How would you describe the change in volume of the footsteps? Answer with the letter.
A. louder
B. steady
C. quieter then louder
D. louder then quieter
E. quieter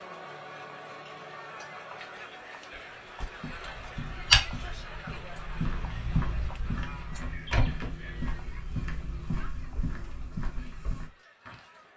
E.